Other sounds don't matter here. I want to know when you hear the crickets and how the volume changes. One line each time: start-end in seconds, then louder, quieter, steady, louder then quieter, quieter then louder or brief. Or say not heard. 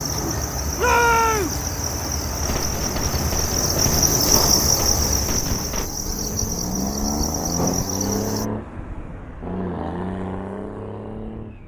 0.0-8.4 louder then quieter.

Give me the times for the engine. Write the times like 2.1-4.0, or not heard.
0.0-11.6.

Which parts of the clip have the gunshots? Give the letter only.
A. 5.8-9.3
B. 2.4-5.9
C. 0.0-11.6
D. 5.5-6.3
B.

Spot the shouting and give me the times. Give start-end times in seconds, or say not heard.
0.8-1.6.